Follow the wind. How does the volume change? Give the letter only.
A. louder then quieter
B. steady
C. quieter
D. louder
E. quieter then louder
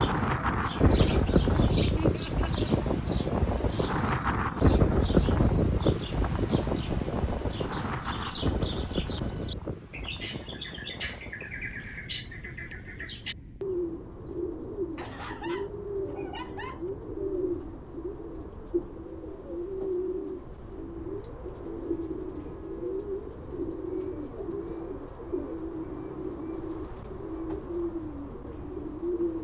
C.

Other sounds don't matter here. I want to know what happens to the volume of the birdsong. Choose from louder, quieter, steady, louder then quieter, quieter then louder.
louder.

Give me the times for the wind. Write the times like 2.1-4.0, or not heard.
0.0-29.2.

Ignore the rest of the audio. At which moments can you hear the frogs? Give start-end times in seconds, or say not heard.
not heard.